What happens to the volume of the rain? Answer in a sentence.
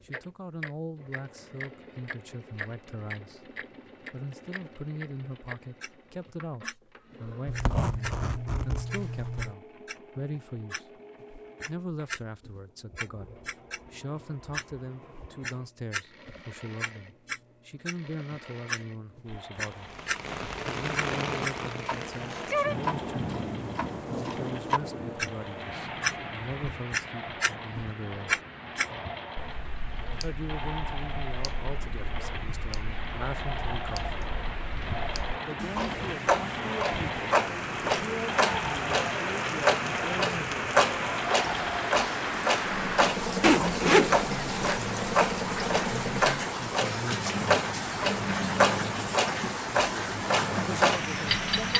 The volume of the rain goes down, then up.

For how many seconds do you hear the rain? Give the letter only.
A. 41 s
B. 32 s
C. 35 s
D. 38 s
B.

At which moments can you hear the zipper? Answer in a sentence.
You can hear the zipper from 7.5 to 9.6 s and from 43.4 to 44.8 s.